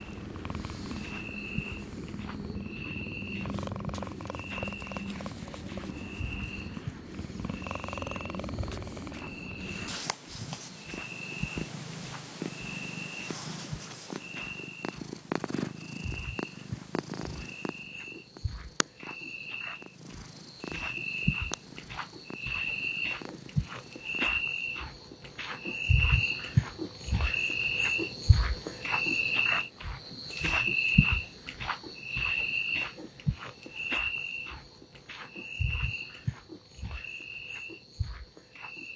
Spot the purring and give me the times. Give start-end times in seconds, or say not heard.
0.0-24.4.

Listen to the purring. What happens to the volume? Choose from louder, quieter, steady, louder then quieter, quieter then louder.
quieter.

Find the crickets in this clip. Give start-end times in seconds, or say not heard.
0.0-38.9.